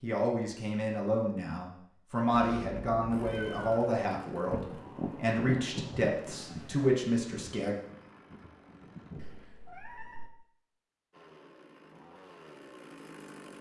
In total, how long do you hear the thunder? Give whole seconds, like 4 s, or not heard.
5 s.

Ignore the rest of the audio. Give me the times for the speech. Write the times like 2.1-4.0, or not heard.
0.0-7.8.